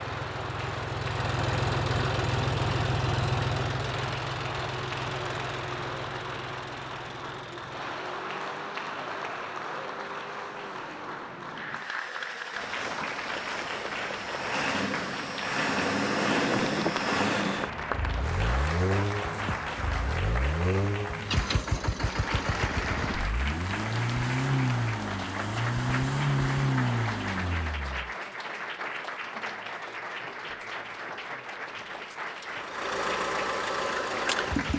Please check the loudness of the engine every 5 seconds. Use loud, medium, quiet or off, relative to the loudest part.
loud, medium, medium, loud, loud, loud, loud.